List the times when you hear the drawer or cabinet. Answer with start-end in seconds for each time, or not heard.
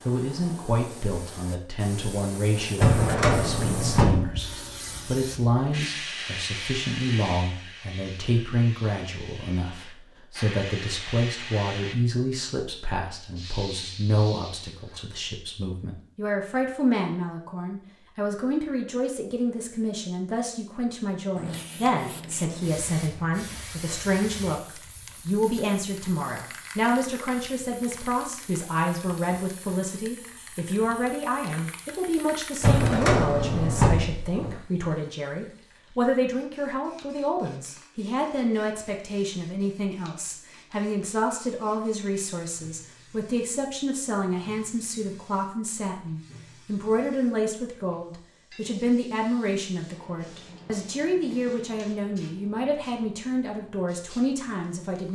2.8-4.2, 32.6-34.5.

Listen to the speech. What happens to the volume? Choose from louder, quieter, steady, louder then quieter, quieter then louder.
steady.